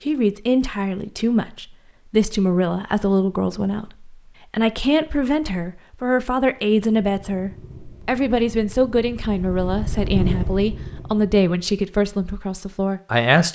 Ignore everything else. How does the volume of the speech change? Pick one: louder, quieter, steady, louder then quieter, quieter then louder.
steady.